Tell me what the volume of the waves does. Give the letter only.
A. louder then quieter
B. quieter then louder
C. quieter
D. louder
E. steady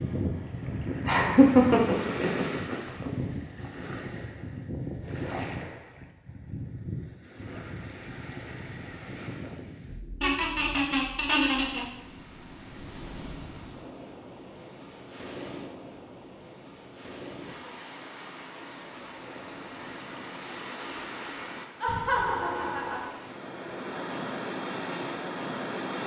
B.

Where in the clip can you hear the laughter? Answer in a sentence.
You can hear the laughter from 1.1 to 3.2 s, from 10.2 to 11.8 s and from 21.8 to 23.1 s.